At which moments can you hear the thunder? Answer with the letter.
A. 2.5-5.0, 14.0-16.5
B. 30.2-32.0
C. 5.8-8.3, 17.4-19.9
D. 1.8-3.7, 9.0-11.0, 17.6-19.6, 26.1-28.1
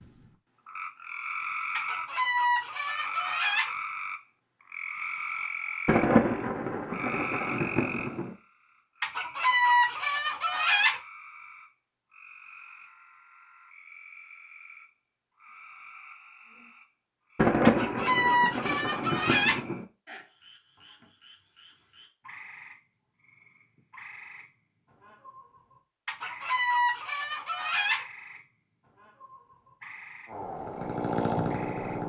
C.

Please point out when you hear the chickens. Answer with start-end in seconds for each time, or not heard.
1.8-3.7, 9.0-11.0, 17.6-19.6, 26.1-28.1.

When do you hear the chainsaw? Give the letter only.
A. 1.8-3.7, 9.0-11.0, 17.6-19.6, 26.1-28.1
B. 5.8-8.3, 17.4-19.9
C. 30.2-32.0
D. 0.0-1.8
C.